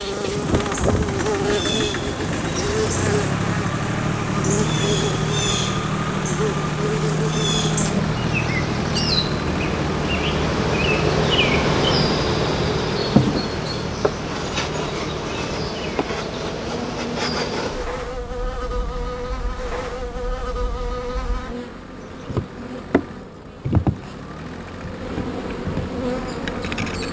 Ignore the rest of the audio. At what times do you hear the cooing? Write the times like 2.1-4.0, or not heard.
not heard.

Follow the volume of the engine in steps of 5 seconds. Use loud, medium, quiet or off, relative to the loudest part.
loud, loud, medium, quiet, quiet, medium.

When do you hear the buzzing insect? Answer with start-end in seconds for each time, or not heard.
0.0-27.0.